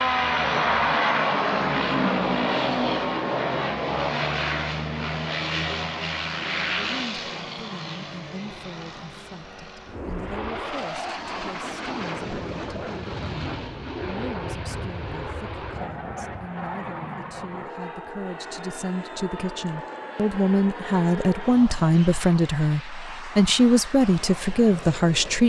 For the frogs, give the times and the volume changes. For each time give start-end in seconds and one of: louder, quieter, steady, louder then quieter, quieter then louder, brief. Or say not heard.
not heard.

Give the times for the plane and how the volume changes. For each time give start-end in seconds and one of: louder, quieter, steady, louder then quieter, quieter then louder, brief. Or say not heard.
0.0-25.4 quieter.